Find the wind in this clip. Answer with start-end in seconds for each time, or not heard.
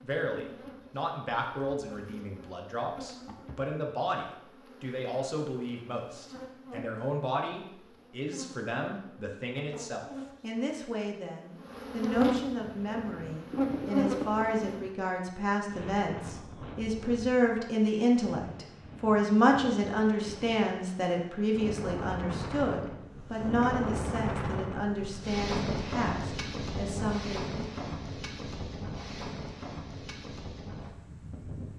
12.6-31.7.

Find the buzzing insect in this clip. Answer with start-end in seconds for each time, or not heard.
0.0-14.9.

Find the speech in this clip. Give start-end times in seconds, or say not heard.
0.0-27.5.